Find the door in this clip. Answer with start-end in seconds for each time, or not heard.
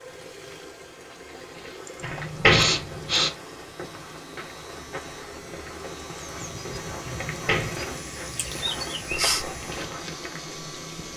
2.0-3.3, 7.3-8.3.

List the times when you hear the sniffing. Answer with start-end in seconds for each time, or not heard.
1.9-3.4, 8.3-9.4.